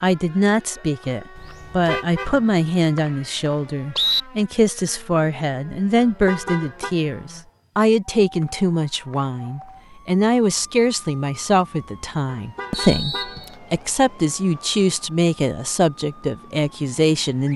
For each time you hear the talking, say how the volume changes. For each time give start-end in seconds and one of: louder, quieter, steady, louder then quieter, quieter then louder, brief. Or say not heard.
0.0-17.5 steady.